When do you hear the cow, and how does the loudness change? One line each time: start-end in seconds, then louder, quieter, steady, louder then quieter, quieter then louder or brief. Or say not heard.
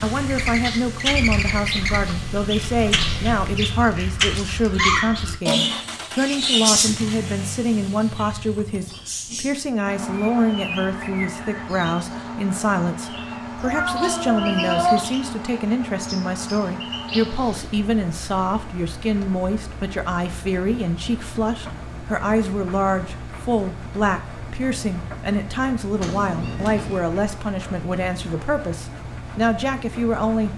not heard.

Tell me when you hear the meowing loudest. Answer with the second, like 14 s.
15 s.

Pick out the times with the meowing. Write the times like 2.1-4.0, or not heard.
2.8-3.5, 13.6-15.1, 26.0-27.0.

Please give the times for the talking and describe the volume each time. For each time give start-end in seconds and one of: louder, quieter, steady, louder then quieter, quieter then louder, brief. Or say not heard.
0.0-30.5 steady.